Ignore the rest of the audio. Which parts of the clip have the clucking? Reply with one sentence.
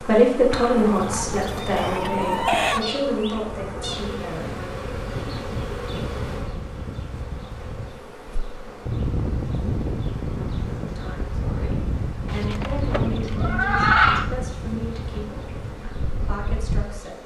You can hear the clucking from 0.8 to 2.9 s and from 12.2 to 14.3 s.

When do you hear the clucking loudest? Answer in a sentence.
The volume of the clucking peaks at 14 seconds.